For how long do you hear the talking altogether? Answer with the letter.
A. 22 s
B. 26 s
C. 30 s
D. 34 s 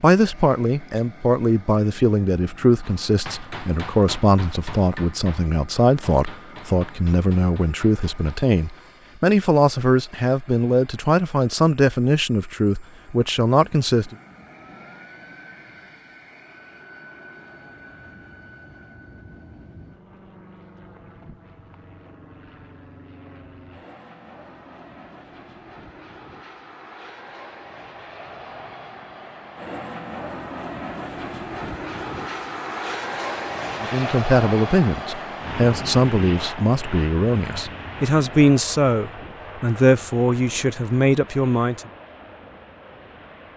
A.